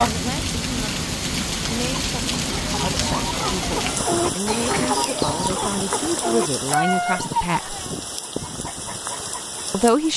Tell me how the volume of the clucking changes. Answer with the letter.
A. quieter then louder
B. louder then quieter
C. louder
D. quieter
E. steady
B.